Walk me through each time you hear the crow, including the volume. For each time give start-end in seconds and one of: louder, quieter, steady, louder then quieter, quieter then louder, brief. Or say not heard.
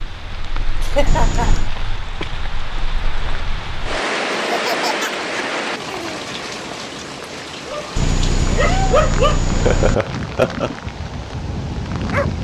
not heard.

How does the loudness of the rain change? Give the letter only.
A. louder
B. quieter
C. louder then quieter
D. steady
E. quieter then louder
C.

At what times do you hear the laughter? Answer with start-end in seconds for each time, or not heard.
0.8-1.8, 4.5-6.2, 9.4-10.8.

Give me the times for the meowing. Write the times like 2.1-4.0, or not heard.
1.1-1.7, 8.0-9.9.